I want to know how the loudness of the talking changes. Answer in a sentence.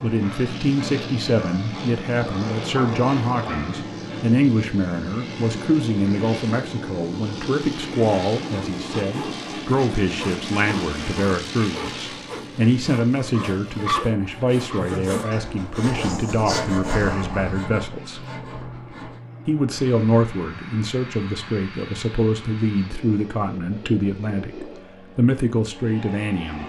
The loudness of the talking stays about the same.